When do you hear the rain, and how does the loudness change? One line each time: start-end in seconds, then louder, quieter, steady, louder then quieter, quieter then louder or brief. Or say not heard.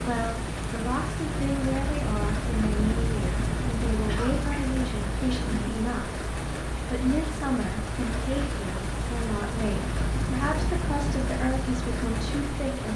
0.0-12.9 steady.